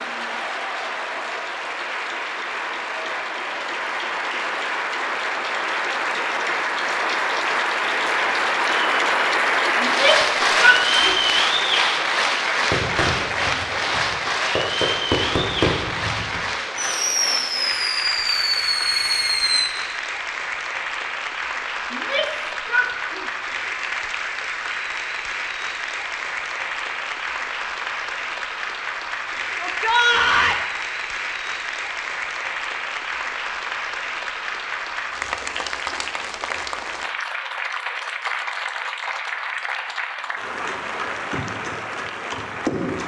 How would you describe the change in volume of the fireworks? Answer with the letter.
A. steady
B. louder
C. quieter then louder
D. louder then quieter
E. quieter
B.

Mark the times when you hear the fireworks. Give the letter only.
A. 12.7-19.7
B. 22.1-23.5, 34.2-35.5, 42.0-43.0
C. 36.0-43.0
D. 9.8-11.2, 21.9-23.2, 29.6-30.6
A.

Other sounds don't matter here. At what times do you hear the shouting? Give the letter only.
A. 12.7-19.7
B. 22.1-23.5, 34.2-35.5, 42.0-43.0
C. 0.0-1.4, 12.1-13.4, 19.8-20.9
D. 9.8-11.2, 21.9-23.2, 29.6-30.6
D.